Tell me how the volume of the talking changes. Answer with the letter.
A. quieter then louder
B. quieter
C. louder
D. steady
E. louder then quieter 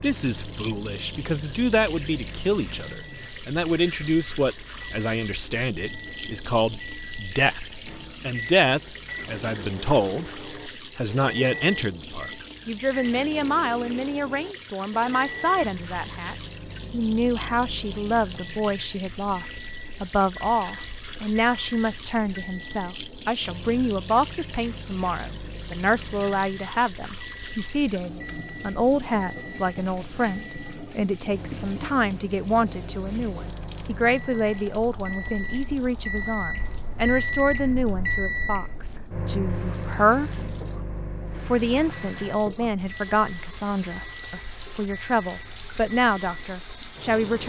D.